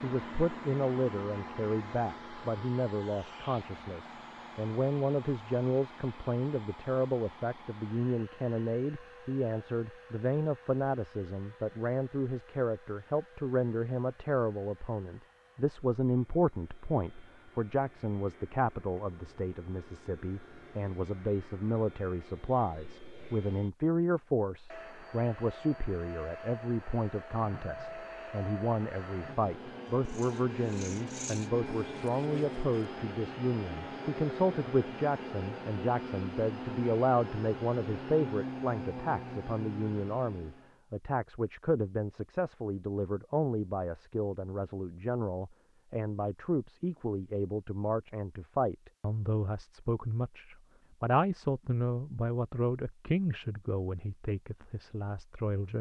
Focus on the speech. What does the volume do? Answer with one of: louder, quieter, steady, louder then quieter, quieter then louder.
steady.